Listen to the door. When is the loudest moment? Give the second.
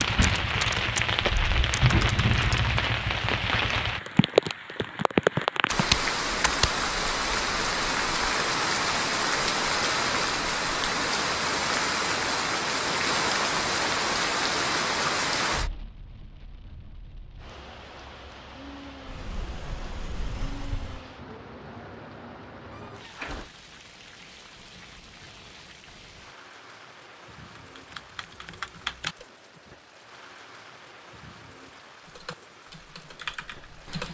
2 s.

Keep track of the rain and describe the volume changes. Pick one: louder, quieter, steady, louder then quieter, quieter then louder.
quieter.